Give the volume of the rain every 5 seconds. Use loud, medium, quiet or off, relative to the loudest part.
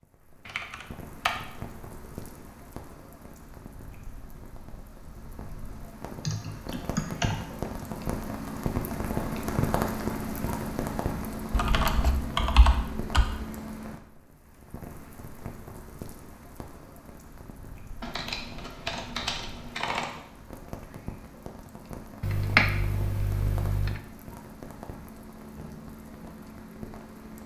quiet, loud, loud, quiet, medium, medium.